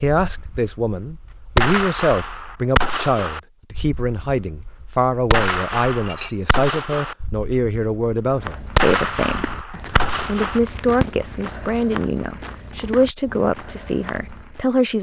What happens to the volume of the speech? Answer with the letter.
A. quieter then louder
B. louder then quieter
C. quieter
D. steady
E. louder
D.